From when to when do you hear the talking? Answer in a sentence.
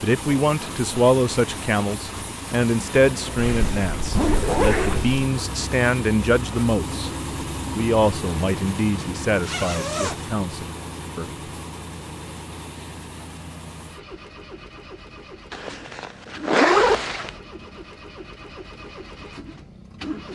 The talking can be heard from 0.0 to 7.1 s and from 7.8 to 11.2 s.